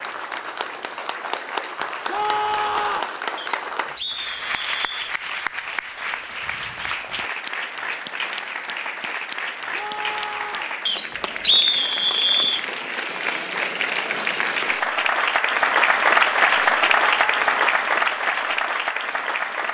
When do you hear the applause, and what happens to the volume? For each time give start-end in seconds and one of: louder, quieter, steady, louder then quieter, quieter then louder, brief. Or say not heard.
0.0-19.6 louder.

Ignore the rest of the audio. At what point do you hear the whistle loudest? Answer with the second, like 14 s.
12 s.